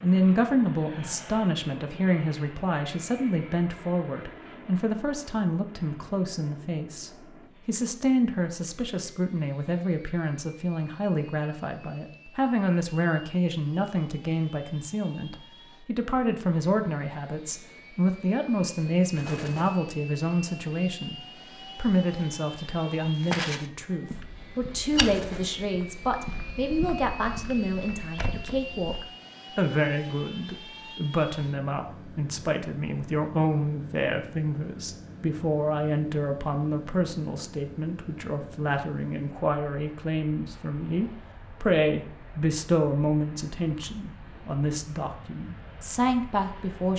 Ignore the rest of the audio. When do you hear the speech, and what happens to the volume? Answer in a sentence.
You can hear the speech from 0.0 to 46.9 s, at a steady volume.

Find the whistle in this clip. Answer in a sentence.
You can't hear the whistle here.